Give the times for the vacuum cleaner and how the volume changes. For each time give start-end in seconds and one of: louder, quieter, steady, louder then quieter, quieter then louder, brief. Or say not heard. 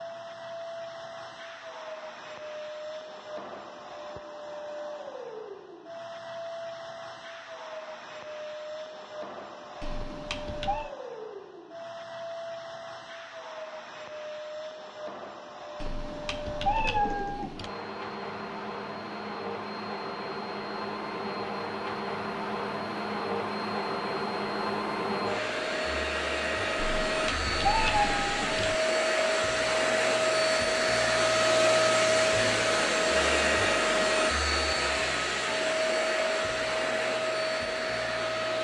0.0-38.5 louder.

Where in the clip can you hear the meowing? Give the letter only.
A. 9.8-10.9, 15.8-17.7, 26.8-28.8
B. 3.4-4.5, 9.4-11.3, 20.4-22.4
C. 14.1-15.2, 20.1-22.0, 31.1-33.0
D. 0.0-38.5
A.